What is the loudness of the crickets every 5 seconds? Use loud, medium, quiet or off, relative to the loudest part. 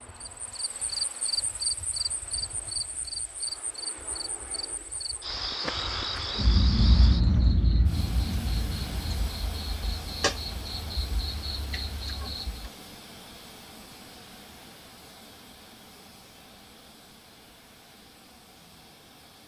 loud, loud, loud, off.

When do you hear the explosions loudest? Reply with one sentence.
The volume of the explosions peaks at 7 seconds.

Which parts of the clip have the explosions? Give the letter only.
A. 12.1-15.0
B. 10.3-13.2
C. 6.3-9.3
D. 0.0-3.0
C.